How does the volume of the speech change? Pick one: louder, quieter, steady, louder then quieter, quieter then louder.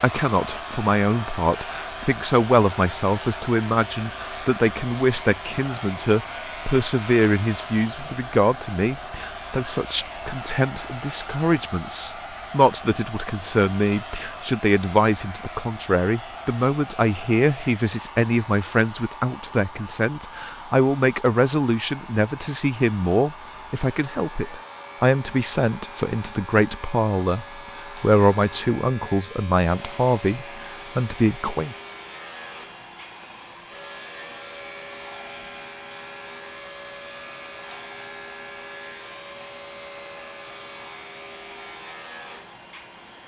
steady.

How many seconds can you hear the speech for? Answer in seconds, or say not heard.
32 s.